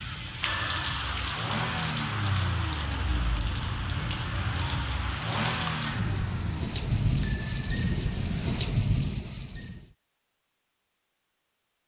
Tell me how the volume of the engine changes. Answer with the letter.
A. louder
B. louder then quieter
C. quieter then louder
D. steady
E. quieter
E.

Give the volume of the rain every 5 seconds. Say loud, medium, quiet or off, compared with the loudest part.
loud, loud, off.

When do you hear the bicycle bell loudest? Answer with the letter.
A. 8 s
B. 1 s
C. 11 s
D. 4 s
B.